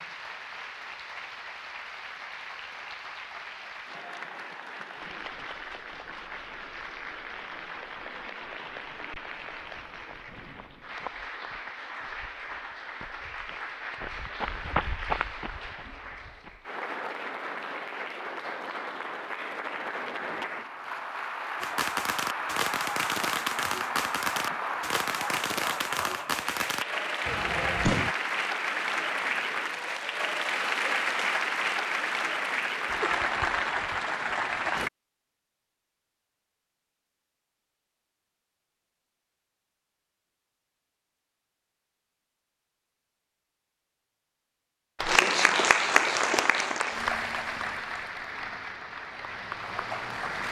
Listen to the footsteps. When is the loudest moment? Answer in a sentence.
The volume of the footsteps peaks at 15 seconds.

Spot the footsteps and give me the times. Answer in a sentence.
You can hear the footsteps from 10.0 to 16.6 s.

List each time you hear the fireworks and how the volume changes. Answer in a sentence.
You can hear the fireworks from 21.6 to 28.1 s, at a steady volume.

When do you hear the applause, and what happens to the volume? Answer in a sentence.
The applause can be heard from 0.0 to 34.9 s, getting louder; and from 45.0 to 50.4 s, getting quieter.